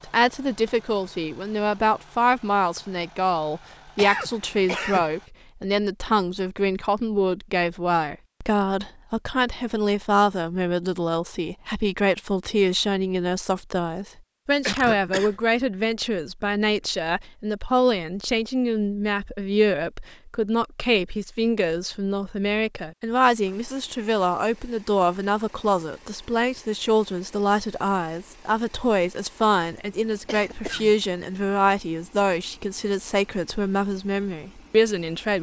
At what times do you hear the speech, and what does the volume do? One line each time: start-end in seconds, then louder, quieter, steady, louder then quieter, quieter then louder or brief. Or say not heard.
0.1-35.3 steady.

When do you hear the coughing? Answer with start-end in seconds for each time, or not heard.
4.0-5.0, 14.7-15.4, 30.2-30.9.